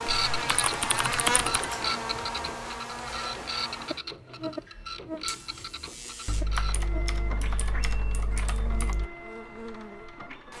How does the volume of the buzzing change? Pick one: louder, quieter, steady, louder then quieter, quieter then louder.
quieter.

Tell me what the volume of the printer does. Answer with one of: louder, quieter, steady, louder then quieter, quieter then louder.
quieter.